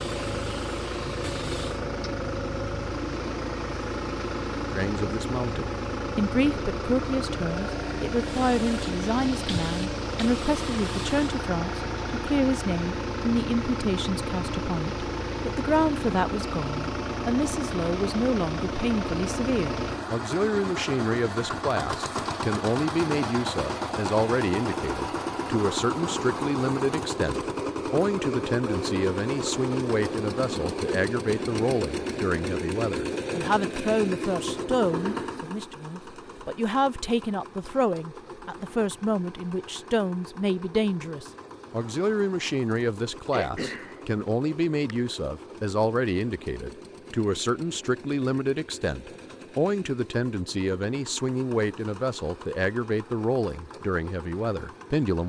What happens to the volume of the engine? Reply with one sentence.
The volume of the engine goes down.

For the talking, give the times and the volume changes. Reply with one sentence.
The talking can be heard from 4.7 to 55.2 s, at a steady volume.